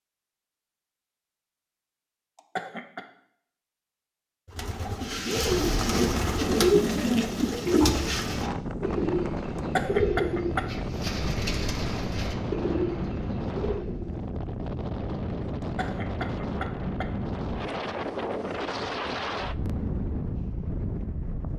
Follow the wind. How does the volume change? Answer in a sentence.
The loudness of the wind stays about the same.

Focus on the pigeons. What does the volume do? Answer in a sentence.
The volume of the pigeons goes down.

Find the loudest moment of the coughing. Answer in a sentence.
The loudest moment of the coughing is at 10 seconds.